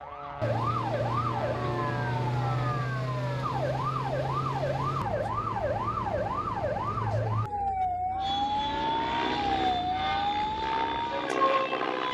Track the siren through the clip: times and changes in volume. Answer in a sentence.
The siren can be heard from 0.0 to 12.0 s, at a steady volume.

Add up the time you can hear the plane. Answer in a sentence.
The plane can be heard for 7 seconds in total.